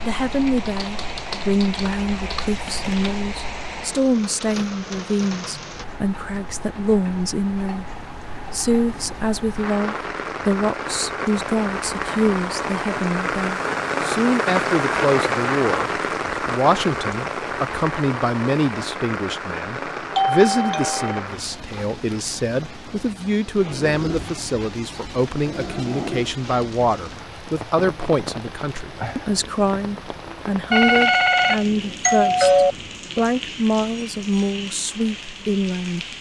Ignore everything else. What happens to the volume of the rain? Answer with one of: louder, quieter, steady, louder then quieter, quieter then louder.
louder then quieter.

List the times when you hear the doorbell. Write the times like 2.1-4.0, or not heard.
2.6-3.1, 20.1-21.2, 30.7-32.8.